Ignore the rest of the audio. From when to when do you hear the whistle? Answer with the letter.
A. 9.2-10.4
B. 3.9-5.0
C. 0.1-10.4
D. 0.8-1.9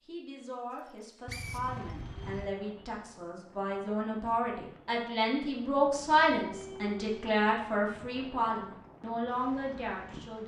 D.